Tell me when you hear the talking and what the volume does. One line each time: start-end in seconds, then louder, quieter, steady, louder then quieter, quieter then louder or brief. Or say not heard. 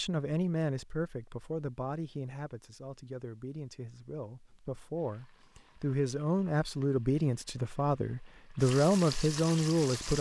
0.0-10.1 quieter then louder.